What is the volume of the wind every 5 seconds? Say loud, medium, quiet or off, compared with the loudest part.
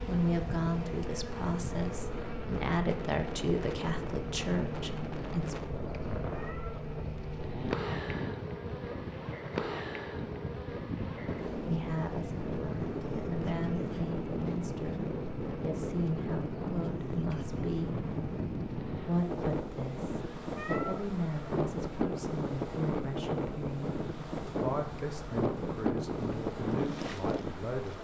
medium, medium, loud, loud, loud, loud.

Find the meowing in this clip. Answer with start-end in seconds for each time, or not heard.
6.3-6.8, 20.6-21.1.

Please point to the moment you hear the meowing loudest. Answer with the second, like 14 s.
21 s.